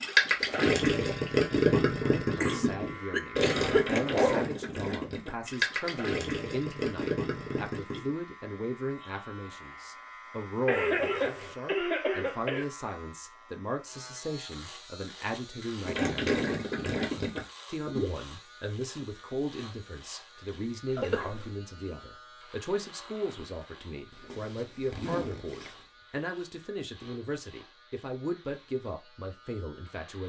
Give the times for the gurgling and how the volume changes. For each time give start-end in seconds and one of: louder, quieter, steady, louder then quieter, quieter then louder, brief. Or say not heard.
0.0-8.1 quieter
15.8-18.1 brief.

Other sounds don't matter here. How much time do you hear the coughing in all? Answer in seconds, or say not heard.
4 s.